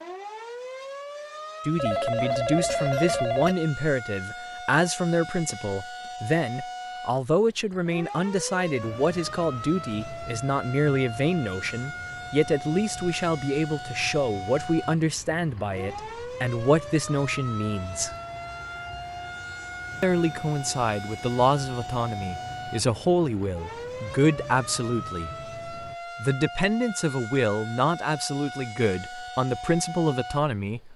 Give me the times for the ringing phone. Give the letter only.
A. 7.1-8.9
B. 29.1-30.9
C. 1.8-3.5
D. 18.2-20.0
C.